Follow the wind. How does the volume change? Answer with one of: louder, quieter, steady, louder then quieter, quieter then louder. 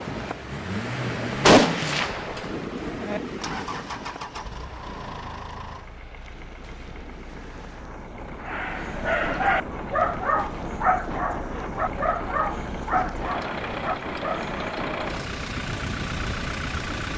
quieter then louder.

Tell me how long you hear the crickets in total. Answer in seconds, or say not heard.
not heard.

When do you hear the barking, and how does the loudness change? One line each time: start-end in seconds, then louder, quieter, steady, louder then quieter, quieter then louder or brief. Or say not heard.
8.4-14.5 quieter.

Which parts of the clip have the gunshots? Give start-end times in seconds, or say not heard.
1.4-3.2.